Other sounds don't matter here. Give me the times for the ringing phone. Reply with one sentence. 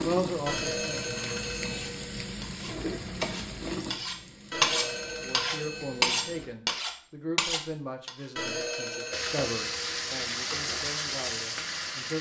The ringing phone can be heard from 0.5 to 2.4 s, from 4.5 to 6.5 s and from 8.3 to 10.1 s.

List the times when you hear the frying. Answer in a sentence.
You can hear the frying from 0.0 to 6.5 s and from 9.1 to 12.1 s.